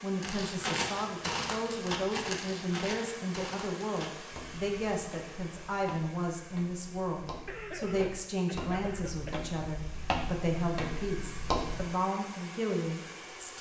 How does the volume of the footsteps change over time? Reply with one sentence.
The volume of the footsteps goes down, then up.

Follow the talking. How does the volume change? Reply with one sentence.
The loudness of the talking stays about the same.